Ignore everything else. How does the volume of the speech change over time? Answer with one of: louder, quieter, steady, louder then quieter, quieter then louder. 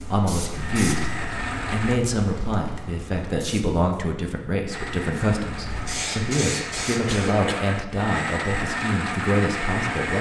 steady.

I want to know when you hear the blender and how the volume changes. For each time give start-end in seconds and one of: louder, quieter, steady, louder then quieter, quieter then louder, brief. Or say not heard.
0.0-2.0 brief
4.7-10.1 louder.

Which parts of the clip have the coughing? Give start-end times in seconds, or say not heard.
7.0-7.7.